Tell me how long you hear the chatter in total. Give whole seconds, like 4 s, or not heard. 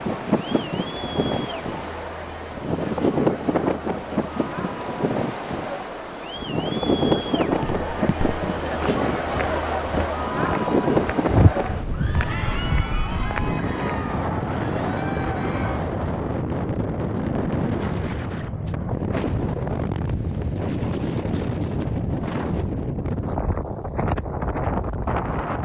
16 s.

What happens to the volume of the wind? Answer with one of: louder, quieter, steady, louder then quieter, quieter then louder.
steady.